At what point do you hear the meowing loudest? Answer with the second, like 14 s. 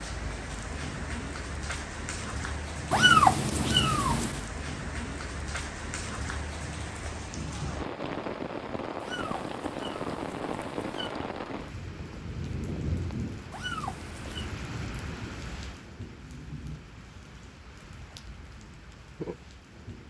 3 s.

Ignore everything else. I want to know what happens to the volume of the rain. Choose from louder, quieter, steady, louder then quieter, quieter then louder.
quieter.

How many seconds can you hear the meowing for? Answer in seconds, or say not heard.
5 s.